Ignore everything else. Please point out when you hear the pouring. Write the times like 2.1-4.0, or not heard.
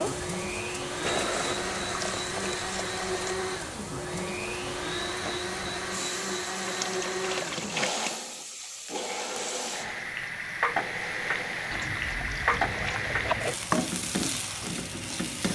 1.0-3.4, 6.7-8.2, 11.7-13.6.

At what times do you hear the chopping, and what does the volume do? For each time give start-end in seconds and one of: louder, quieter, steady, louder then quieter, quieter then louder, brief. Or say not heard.
not heard.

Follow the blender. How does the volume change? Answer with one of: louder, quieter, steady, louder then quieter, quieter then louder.
quieter.